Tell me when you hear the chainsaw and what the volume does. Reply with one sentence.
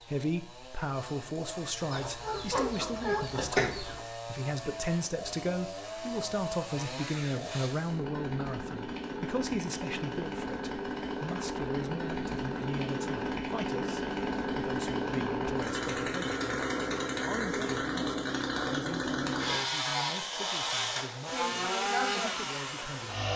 The chainsaw can be heard from 0.0 to 23.3 s, getting louder.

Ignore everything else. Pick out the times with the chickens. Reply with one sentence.
The chickens can be heard from 1.9 to 4.0 s.